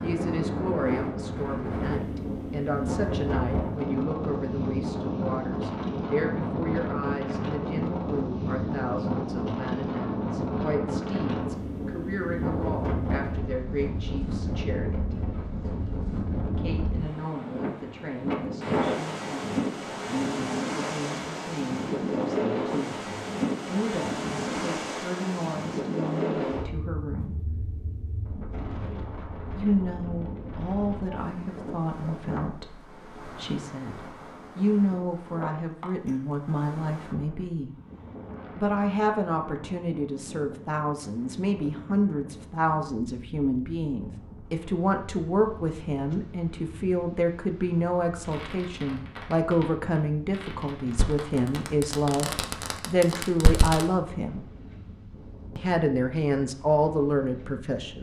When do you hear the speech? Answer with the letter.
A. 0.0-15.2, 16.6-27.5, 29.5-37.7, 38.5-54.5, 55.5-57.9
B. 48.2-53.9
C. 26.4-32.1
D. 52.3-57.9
A.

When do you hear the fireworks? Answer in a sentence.
You can hear the fireworks from 48.2 to 53.9 s.